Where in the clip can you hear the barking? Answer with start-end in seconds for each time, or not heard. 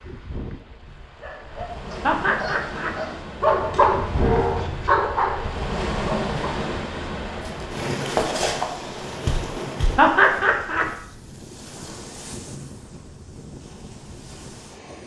1.2-6.3.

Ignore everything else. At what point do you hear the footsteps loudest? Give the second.
8 s.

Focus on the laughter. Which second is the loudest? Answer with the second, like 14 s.
10 s.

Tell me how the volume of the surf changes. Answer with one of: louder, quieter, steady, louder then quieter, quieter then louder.
louder then quieter.